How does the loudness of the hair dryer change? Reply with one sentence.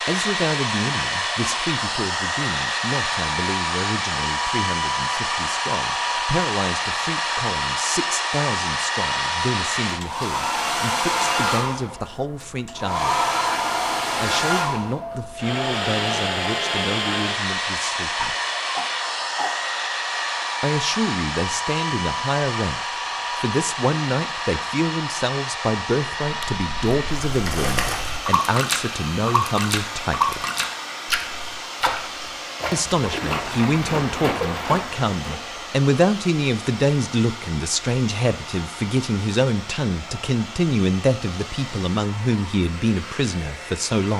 The loudness of the hair dryer goes down.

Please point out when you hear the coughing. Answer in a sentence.
You can hear the coughing from 18.1 to 19.6 s.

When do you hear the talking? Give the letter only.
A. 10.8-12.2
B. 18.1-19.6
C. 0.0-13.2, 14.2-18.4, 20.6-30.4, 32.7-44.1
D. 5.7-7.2
C.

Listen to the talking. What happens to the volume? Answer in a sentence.
The loudness of the talking goes up.